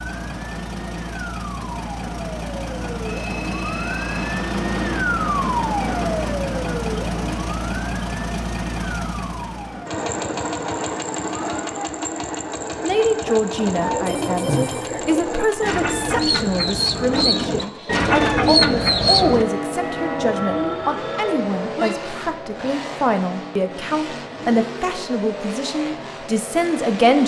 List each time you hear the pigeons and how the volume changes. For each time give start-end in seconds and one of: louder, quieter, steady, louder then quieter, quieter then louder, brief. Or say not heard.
13.6-19.4 louder.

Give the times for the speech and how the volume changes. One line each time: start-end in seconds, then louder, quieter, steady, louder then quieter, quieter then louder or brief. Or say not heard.
12.8-27.2 steady.